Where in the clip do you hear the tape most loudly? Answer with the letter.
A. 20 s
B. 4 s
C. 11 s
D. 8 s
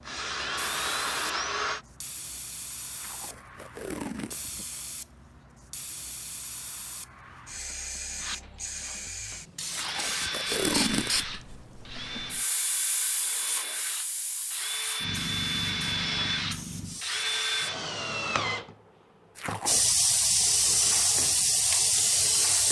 C.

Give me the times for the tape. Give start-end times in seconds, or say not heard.
3.0-4.7, 9.7-11.2, 19.4-19.9.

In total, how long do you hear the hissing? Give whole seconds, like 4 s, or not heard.
21 s.